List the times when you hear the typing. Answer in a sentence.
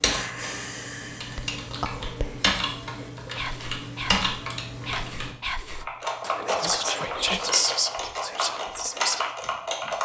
You can hear the typing from 0.0 to 9.9 s.